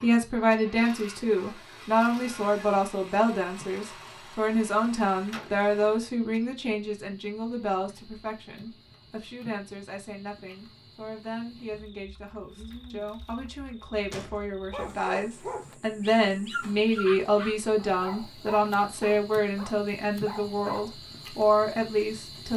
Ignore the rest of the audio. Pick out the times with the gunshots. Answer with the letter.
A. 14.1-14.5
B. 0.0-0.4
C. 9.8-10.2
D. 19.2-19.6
A.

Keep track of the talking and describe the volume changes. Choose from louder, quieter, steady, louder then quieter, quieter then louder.
quieter then louder.